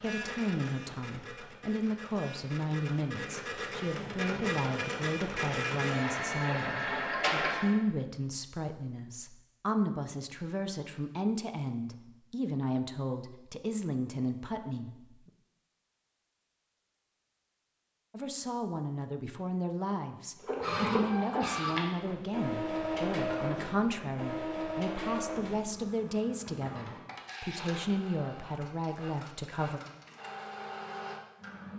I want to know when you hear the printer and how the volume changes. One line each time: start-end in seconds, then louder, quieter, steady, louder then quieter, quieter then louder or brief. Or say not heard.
0.0-7.8 louder
20.4-31.7 quieter.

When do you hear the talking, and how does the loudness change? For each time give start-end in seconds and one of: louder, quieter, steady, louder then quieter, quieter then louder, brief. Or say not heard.
0.0-15.3 steady
18.1-29.8 steady.